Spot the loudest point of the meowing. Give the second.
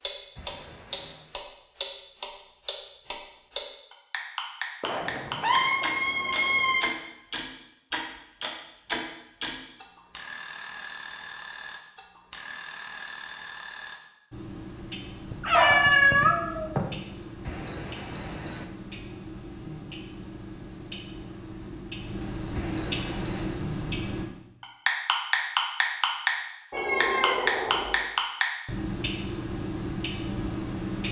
16 s.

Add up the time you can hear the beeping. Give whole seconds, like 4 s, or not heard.
3 s.